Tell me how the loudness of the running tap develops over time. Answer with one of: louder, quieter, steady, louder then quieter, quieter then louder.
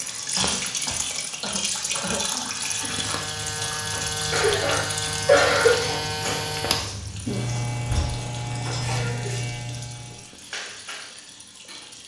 quieter.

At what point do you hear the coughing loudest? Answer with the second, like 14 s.
5 s.